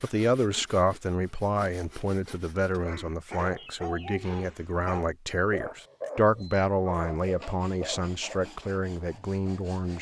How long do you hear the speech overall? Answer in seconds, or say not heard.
10 s.